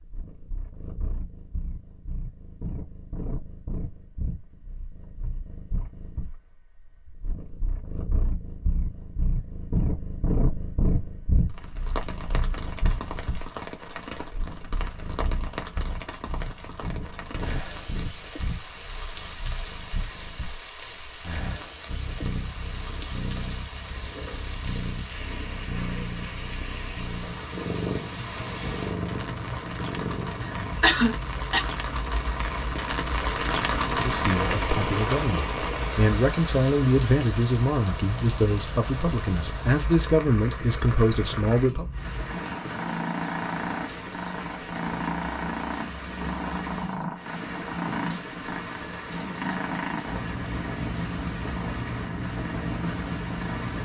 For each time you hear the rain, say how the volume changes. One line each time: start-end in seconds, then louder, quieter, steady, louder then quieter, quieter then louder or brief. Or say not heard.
11.4-53.8 louder then quieter.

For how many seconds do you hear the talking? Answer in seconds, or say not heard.
8 s.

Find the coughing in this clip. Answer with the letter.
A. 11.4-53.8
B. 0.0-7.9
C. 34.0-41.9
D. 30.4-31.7
D.